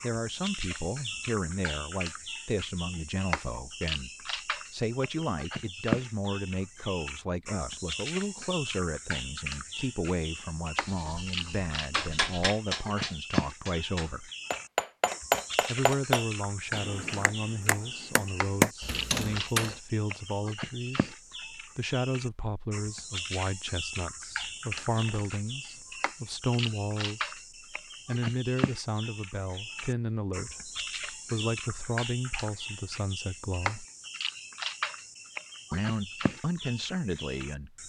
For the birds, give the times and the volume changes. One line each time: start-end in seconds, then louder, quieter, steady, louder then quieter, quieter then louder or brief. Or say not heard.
0.0-37.8 steady.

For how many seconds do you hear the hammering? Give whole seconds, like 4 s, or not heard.
8 s.